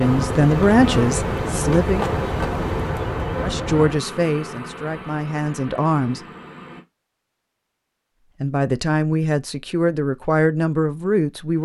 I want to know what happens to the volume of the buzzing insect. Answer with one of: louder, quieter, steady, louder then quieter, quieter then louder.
quieter.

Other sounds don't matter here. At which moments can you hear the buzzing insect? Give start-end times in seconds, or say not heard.
0.0-6.8.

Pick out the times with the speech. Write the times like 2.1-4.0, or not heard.
0.0-2.0, 3.4-6.2, 8.4-11.6.